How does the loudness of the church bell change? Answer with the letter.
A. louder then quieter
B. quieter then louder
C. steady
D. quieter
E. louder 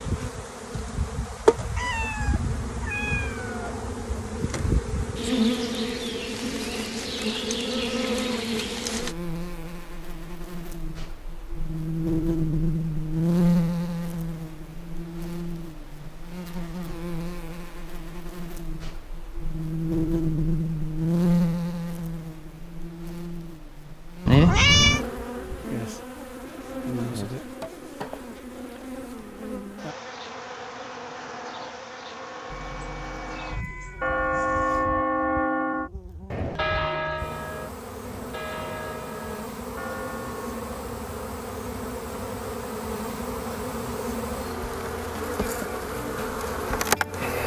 A.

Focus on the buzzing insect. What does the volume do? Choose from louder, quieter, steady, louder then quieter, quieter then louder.
quieter then louder.